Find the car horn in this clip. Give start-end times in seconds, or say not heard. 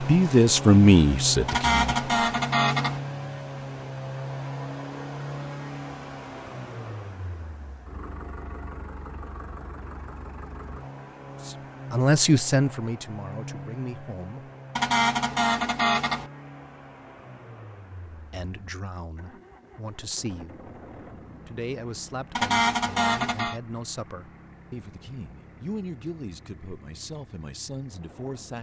1.4-3.0, 14.8-16.3, 22.4-23.6.